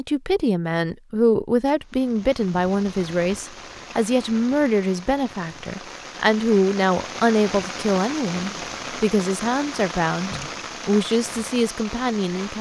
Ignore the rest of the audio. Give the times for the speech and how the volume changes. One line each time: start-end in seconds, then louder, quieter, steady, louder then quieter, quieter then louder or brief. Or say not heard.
0.0-12.5 steady.